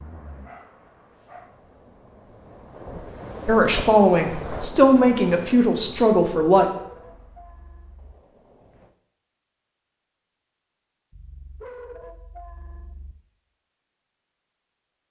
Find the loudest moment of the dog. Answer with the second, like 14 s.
12 s.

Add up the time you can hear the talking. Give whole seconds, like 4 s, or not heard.
3 s.